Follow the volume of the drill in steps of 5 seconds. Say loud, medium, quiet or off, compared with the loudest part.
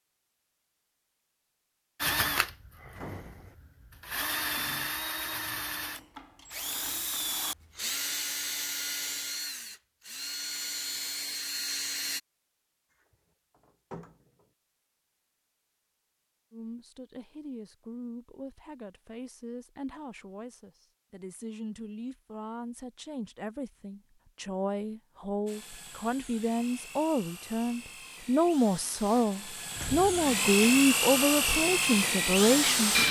medium, medium, medium, off, off, quiet, loud.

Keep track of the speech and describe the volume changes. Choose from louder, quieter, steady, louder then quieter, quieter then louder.
louder.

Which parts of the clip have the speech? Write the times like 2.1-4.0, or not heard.
16.5-33.0.